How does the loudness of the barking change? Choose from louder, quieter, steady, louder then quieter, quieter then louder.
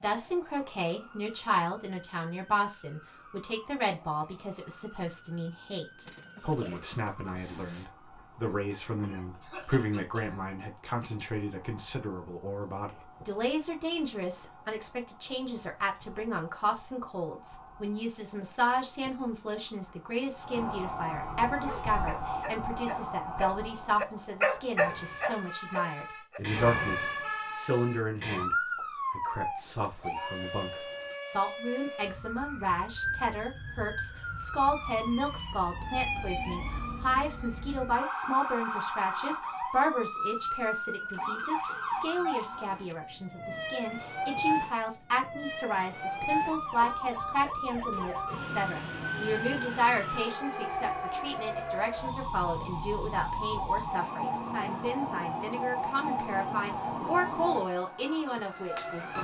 louder then quieter.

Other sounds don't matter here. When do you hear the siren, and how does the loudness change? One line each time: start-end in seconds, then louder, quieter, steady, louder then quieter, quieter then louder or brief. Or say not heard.
0.0-59.1 louder.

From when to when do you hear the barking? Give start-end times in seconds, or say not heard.
21.4-26.6.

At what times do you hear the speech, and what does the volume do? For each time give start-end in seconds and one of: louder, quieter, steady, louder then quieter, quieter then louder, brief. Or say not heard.
0.0-59.1 steady.